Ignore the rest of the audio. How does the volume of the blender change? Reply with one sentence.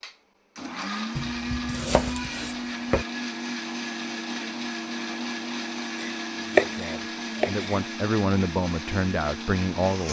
The loudness of the blender stays about the same.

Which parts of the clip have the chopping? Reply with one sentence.
You can hear the chopping from 1.1 to 3.0 s and from 6.0 to 7.8 s.